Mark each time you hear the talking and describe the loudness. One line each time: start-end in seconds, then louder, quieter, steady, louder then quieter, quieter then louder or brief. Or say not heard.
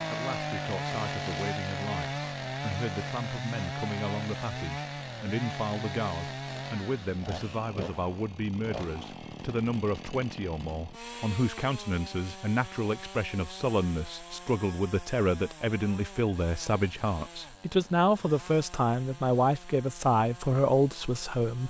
0.1-21.6 louder.